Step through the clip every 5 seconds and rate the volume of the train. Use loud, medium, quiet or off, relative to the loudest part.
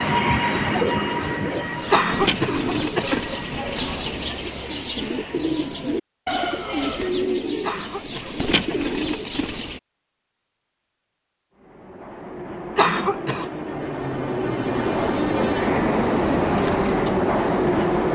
medium, off, medium, loud.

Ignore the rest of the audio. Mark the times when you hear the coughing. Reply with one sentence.
You can hear the coughing from 1.9 to 3.4 s, from 7.6 to 8.9 s and from 12.8 to 13.5 s.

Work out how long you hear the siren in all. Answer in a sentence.
You can't hear the siren here.